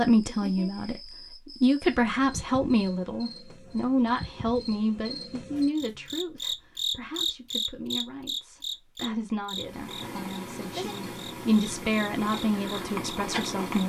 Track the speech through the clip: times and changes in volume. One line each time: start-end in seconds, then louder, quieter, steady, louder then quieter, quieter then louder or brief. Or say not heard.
0.0-13.8 quieter then louder.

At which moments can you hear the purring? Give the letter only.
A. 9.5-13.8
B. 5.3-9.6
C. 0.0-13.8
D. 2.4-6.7
A.